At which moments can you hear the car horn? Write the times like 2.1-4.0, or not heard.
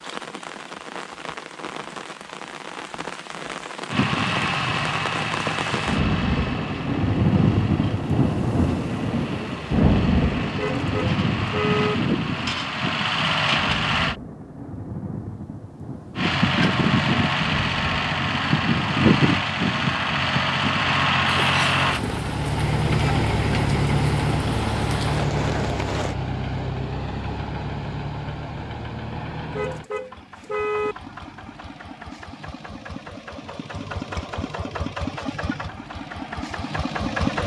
10.6-11.9, 29.6-30.9.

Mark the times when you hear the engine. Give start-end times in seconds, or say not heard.
3.9-14.2, 16.1-37.4.